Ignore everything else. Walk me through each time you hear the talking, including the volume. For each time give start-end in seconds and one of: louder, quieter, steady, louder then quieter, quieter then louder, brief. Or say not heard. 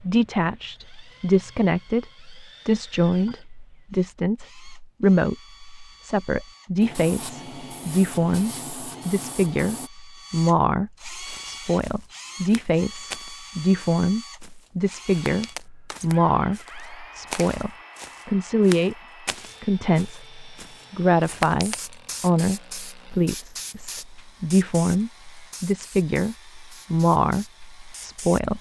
0.0-18.9 steady
19.6-28.5 steady.